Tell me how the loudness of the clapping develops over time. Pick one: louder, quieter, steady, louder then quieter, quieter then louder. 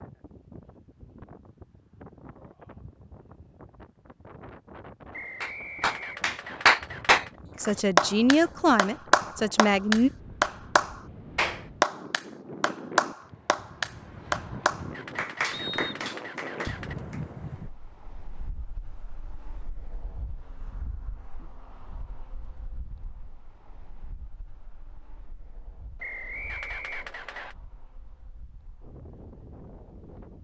quieter.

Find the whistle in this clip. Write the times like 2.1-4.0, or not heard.
5.1-6.7, 15.5-15.9, 26.0-27.6.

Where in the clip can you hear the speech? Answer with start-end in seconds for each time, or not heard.
7.5-10.1.